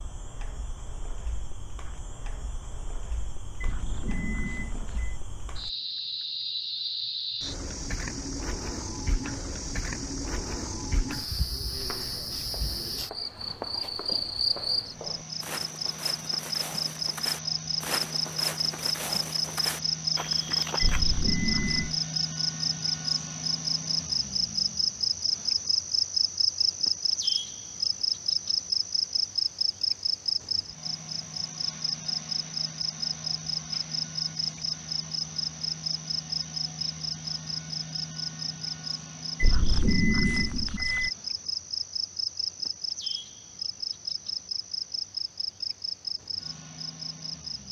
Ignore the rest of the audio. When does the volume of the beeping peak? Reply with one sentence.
The volume of the beeping peaks at 40 seconds.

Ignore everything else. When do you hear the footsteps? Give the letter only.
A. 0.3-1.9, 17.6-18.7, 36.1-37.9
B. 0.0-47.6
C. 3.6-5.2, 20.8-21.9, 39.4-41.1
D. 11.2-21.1
D.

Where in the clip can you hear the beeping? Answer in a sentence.
The beeping can be heard from 3.6 to 5.2 s, from 20.8 to 21.9 s and from 39.4 to 41.1 s.